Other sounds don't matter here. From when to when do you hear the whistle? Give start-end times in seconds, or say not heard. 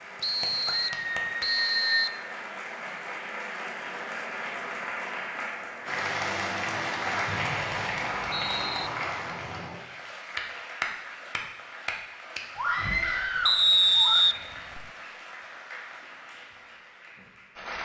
0.2-2.1, 7.2-8.9, 13.4-14.8.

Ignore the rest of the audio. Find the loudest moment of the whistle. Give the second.
14 s.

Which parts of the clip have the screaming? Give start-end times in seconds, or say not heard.
0.7-2.1, 12.6-14.2.